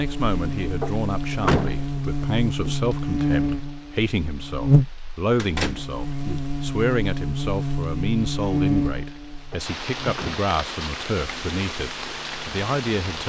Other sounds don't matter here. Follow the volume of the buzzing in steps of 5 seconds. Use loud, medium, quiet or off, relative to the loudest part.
loud, loud, quiet.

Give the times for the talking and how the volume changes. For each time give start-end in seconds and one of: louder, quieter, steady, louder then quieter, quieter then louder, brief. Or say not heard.
0.0-13.2 steady.